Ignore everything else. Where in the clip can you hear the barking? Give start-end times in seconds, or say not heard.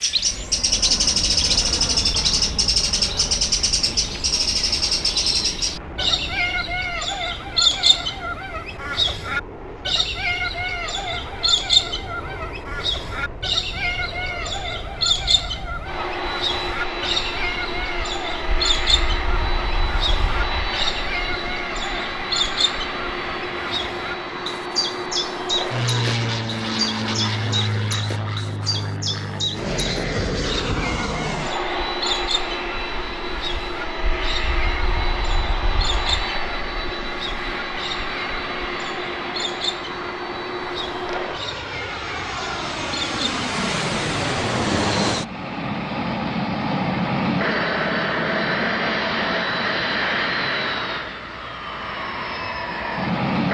not heard.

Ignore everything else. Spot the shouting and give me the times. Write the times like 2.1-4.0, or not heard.
not heard.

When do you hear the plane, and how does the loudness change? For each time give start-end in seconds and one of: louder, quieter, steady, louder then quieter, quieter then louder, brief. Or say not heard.
0.1-53.4 louder.